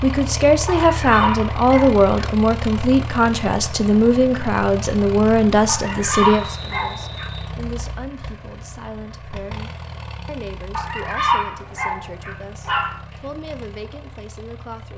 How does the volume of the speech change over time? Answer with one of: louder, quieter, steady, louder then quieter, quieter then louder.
quieter.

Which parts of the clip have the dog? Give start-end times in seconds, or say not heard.
0.7-2.0, 5.7-7.3, 10.7-13.0.